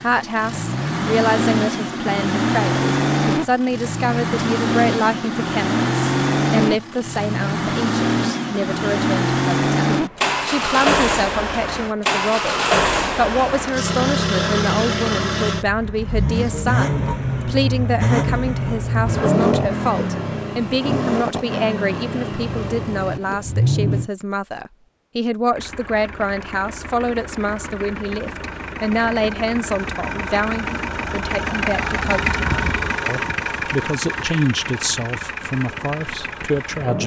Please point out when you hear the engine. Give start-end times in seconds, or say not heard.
0.0-24.1, 25.5-37.0.